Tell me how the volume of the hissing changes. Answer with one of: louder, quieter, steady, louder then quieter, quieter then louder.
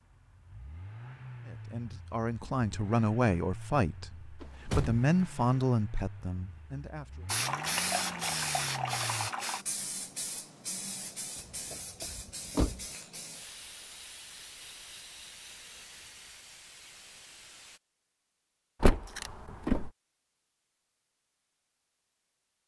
quieter.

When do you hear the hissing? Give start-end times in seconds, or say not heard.
7.2-17.8.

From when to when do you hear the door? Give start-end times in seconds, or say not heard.
4.4-5.6, 11.3-12.8, 18.8-19.9.